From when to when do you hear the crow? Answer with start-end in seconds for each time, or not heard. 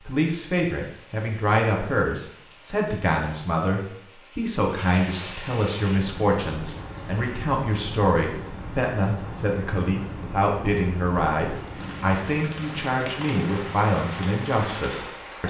not heard.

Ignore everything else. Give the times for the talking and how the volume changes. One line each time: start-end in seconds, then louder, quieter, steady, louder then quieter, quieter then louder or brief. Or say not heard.
0.1-15.4 steady.